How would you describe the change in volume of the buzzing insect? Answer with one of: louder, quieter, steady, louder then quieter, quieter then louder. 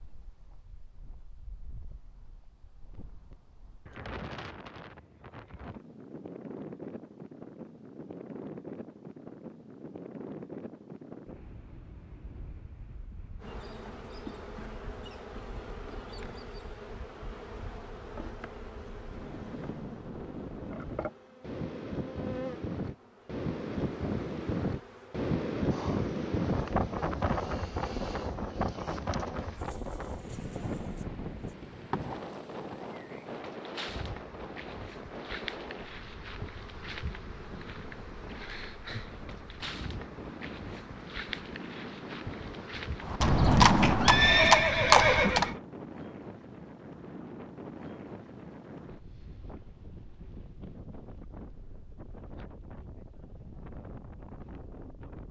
steady.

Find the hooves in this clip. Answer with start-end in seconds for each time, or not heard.
43.0-45.5.